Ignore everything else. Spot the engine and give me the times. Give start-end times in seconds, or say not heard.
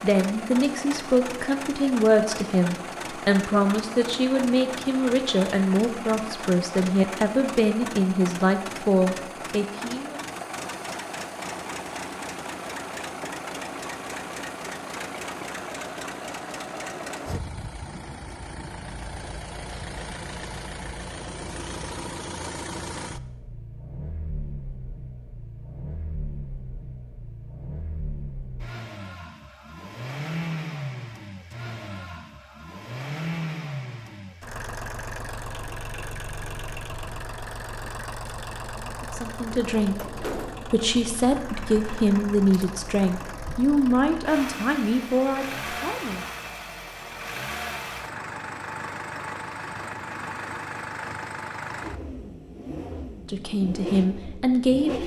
0.0-55.0.